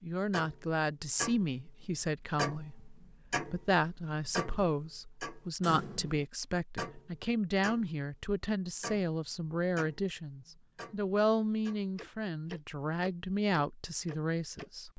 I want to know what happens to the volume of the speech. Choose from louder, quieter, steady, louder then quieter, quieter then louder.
steady.